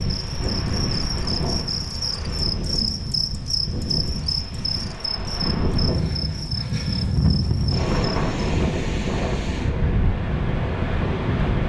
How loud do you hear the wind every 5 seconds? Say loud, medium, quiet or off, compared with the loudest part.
medium, loud, loud.